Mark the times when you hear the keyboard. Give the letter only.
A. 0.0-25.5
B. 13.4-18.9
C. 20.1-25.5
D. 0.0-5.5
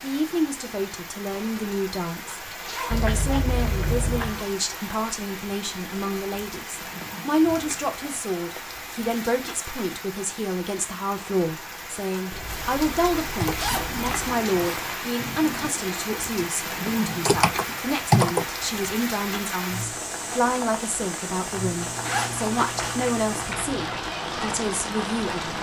B.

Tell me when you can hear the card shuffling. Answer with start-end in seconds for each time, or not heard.
2.9-4.4, 14.1-15.0, 21.6-23.9.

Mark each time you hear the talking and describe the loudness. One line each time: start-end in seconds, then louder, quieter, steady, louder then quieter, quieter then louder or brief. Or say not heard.
0.0-25.5 steady.